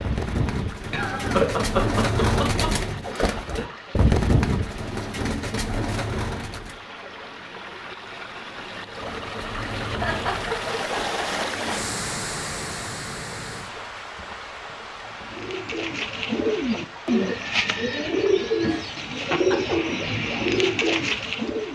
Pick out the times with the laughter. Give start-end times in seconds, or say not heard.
0.9-3.6, 9.9-11.7, 18.6-19.8.